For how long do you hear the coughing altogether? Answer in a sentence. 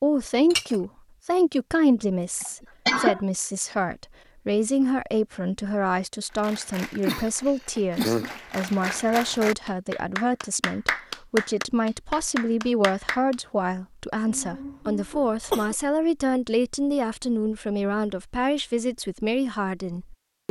The coughing can be heard for 4 seconds in total.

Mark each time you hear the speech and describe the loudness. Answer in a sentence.
The speech can be heard from 0.0 to 20.4 s, at a steady volume.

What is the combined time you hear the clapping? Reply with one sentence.
The clapping can be heard for 7 seconds in total.